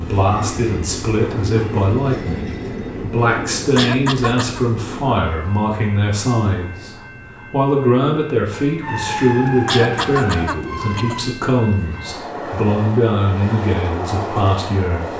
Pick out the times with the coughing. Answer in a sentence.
The coughing can be heard from 3.8 to 4.7 s and from 9.7 to 11.2 s.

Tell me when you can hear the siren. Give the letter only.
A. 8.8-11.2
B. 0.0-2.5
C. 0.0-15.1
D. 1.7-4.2
A.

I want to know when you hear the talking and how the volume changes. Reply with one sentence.
You can hear the talking from 0.0 to 15.1 s, at a steady volume.